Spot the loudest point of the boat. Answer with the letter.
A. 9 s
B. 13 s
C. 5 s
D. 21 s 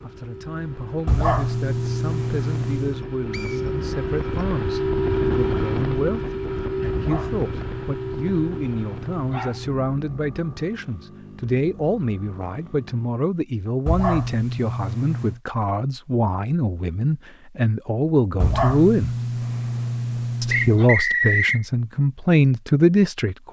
C.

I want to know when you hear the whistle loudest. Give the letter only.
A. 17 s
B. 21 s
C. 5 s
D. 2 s
B.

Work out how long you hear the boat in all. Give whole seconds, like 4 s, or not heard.
13 s.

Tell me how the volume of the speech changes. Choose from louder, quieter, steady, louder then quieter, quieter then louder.
louder.